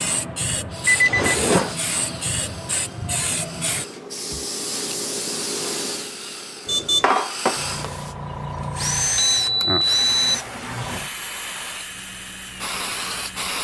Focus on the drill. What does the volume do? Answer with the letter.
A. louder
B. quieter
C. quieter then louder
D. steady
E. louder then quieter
E.